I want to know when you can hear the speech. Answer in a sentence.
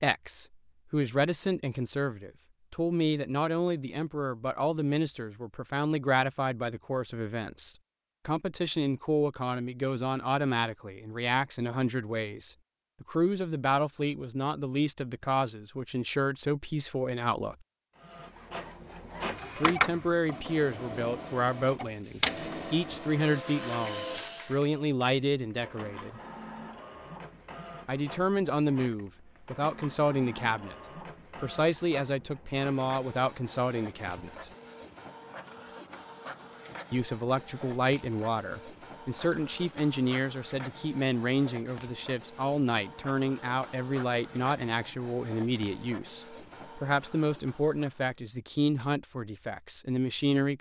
You can hear the speech from 0.0 to 17.6 s, from 19.6 to 26.2 s, from 27.9 to 30.8 s, from 31.4 to 34.5 s and from 36.9 to 50.5 s.